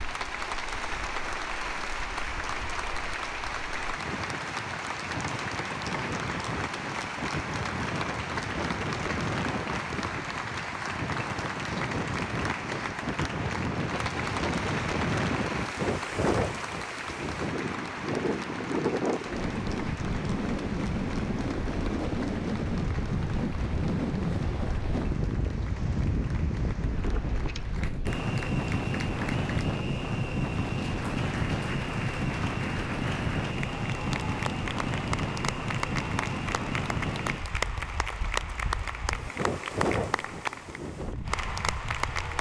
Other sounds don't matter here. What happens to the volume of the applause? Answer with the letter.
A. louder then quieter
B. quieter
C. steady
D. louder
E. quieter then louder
E.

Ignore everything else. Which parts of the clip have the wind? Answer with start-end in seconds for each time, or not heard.
0.0-42.3.